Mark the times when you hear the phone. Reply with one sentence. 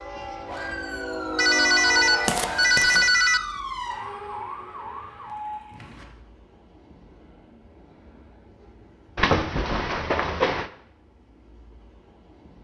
You can hear the phone from 1.4 to 3.4 s and from 9.2 to 10.7 s.